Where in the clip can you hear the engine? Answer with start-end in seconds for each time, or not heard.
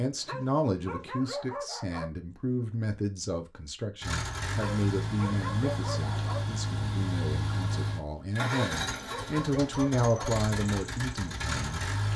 4.0-12.1.